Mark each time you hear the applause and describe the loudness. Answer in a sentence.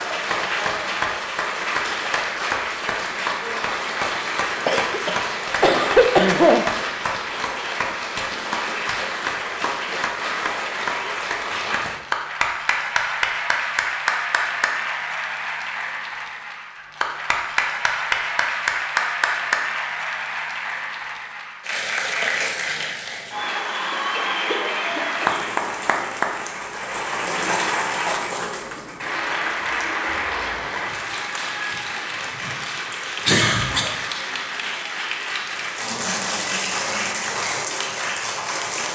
You can hear the applause from 0.0 to 38.9 s, at a steady volume.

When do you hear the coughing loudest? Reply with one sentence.
The volume of the coughing peaks at 6 seconds.